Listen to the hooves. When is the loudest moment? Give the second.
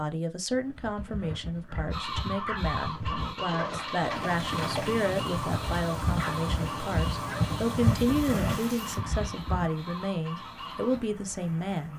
8 s.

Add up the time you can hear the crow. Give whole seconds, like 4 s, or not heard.
9 s.